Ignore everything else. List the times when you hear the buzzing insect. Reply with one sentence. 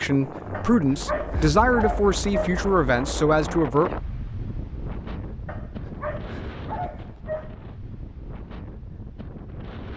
The buzzing insect can't be heard in this clip.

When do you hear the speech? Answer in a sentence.
You can hear the speech from 0.0 to 3.9 s.